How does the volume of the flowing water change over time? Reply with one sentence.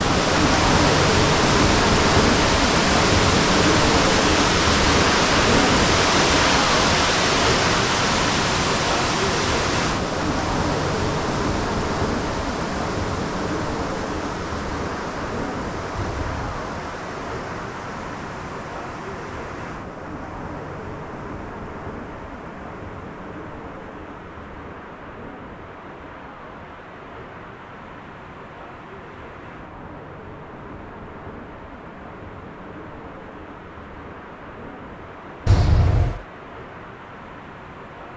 The loudness of the flowing water goes down.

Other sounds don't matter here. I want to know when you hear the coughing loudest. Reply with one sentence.
The loudest moment of the coughing is at 36 seconds.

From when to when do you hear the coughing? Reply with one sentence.
The coughing can be heard from 15.9 to 16.5 s and from 35.5 to 36.2 s.